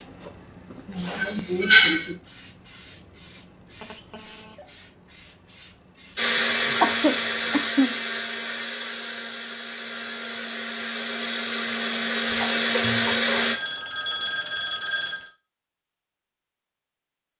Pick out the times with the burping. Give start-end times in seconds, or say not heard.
not heard.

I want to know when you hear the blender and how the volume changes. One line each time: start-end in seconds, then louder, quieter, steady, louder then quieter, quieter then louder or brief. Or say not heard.
6.2-13.6 quieter then louder.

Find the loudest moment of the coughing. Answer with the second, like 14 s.
2 s.